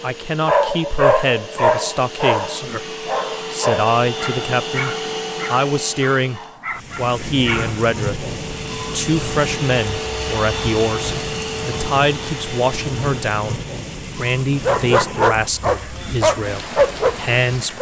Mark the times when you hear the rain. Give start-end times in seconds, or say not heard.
6.7-17.7.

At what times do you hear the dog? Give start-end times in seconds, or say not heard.
0.5-7.9, 14.6-17.7.